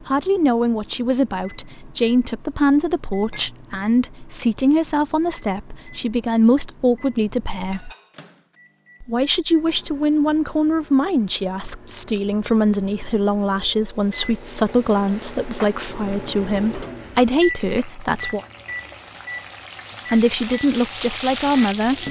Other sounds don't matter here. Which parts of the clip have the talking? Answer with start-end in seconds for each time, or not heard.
0.1-7.9, 9.0-18.4, 20.1-22.0.